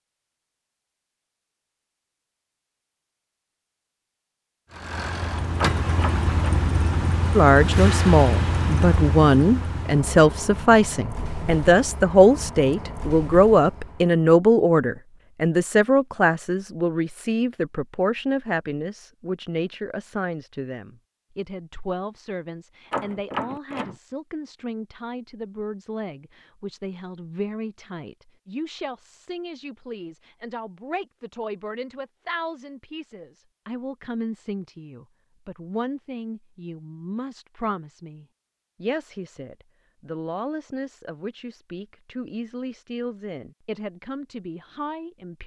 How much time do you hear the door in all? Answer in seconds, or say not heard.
2 s.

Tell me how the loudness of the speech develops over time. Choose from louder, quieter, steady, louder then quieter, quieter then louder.
quieter.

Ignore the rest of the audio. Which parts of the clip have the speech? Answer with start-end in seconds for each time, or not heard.
7.3-45.4.